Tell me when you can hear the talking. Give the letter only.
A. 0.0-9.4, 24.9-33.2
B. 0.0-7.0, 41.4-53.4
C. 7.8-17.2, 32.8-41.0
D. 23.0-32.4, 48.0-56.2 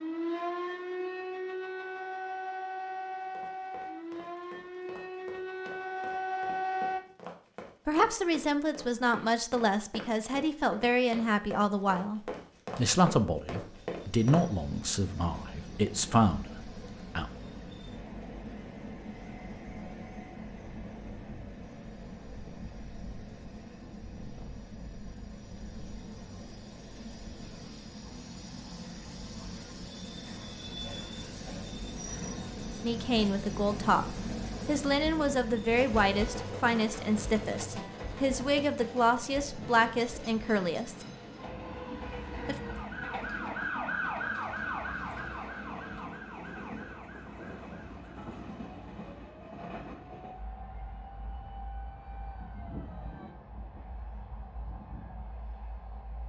C.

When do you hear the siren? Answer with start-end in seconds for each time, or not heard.
0.0-7.0, 41.4-53.4.